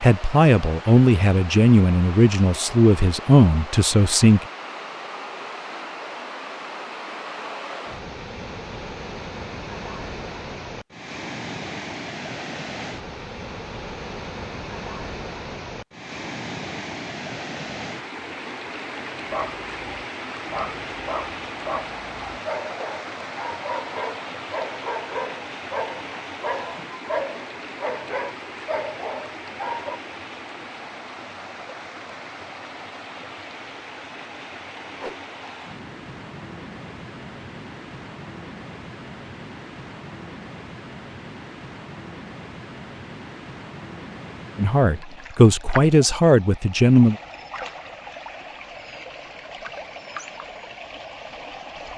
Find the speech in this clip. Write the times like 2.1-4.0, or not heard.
0.0-4.5, 44.5-47.1.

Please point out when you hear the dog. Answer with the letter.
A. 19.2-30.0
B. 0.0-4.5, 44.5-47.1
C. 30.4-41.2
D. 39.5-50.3
A.